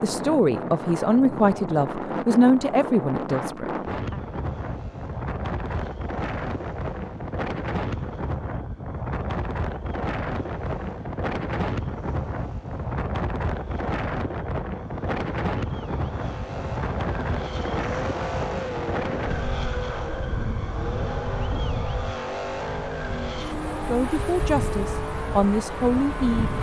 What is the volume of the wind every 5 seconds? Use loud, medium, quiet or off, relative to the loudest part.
loud, loud, loud, loud, medium, medium.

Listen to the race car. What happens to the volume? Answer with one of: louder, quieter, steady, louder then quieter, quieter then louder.
louder.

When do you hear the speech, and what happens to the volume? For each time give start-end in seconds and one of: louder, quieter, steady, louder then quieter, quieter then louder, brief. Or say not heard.
0.0-4.2 quieter
23.9-26.5 brief.